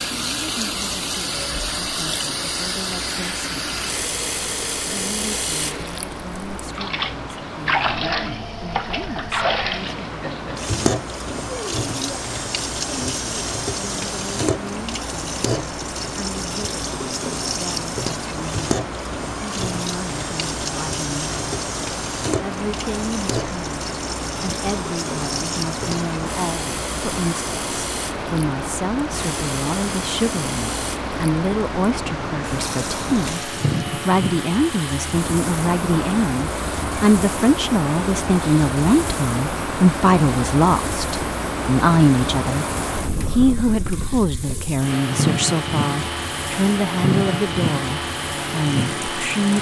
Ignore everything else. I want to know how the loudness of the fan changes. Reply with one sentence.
The loudness of the fan goes up.